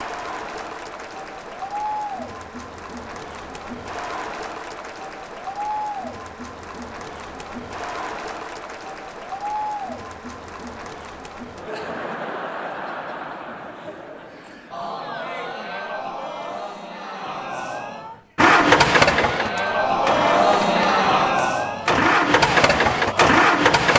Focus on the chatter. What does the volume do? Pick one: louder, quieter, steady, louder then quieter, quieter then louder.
louder.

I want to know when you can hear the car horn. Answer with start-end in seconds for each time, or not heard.
not heard.